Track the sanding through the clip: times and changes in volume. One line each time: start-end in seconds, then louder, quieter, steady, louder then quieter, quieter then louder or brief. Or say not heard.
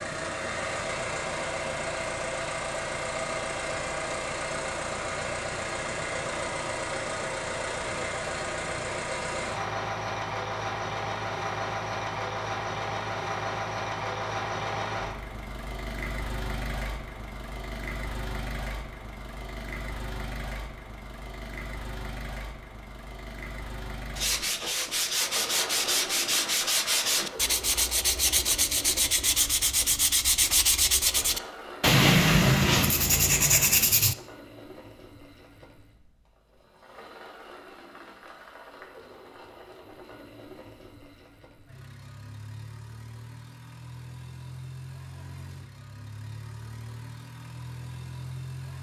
24.1-34.1 louder.